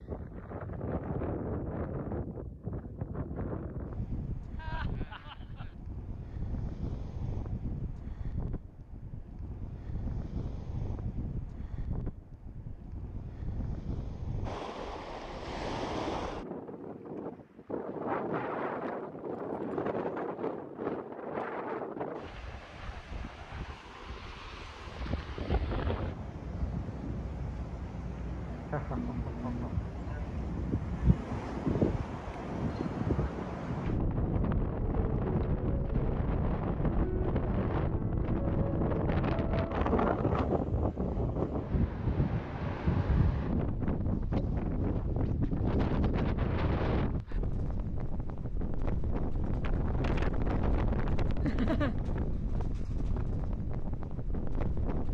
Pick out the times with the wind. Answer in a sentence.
The wind can be heard from 0.0 to 55.0 s.